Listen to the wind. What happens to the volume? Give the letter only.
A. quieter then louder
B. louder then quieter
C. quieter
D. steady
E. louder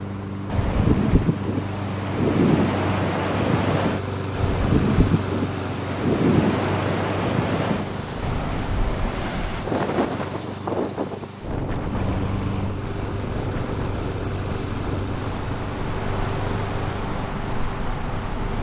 C.